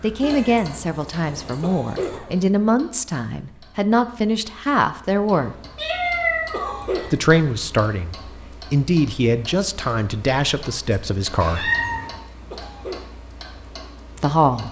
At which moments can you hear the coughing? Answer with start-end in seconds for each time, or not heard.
1.6-2.4, 6.5-7.1, 12.5-13.1.